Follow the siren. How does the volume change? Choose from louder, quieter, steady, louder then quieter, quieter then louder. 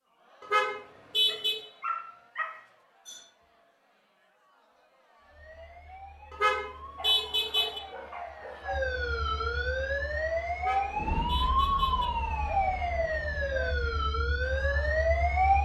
louder.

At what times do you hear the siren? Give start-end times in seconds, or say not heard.
5.2-15.6.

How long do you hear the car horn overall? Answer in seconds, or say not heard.
4 s.